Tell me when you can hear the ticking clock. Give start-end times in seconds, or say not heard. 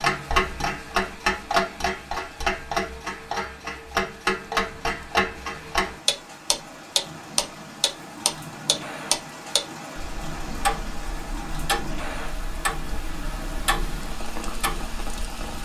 0.0-15.6.